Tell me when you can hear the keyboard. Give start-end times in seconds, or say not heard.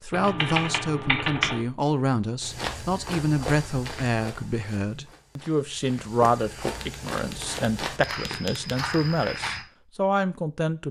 0.1-1.6, 6.8-8.9.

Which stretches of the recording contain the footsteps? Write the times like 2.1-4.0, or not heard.
2.4-9.7.